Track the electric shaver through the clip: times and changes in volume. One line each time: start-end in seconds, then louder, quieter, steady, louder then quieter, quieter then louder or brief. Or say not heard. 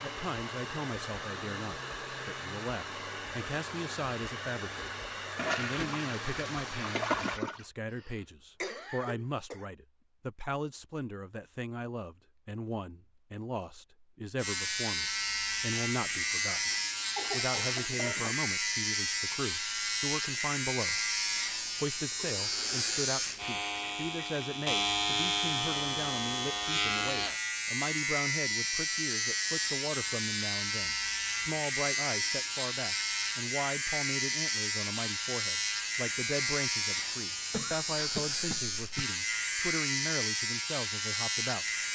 14.3-41.9 steady.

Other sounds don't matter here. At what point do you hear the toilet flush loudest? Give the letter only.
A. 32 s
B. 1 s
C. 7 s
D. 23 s
C.